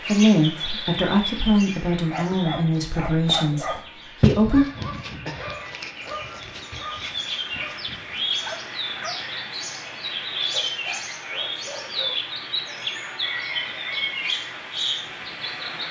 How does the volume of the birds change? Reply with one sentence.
The volume of the birds goes down, then up.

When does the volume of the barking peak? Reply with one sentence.
The volume of the barking peaks at 4 seconds.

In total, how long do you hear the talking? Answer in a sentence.
You can hear the talking for 5 seconds altogether.